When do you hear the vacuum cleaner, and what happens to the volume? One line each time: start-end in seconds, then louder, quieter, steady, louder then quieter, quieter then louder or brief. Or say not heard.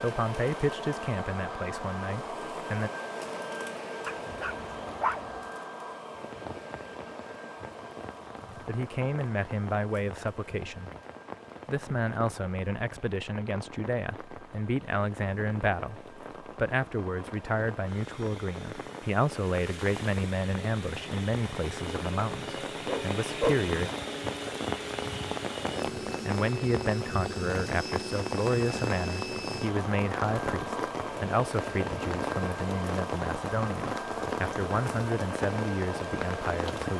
0.0-36.9 quieter then louder.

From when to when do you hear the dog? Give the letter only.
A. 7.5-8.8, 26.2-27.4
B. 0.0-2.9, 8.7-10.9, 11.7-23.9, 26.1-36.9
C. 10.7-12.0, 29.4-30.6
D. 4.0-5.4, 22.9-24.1
D.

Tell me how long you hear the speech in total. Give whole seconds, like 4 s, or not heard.
28 s.